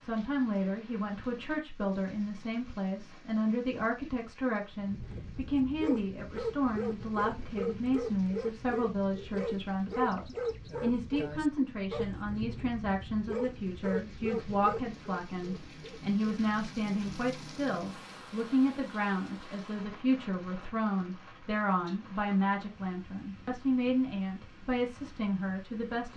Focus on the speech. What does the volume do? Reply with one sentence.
The loudness of the speech stays about the same.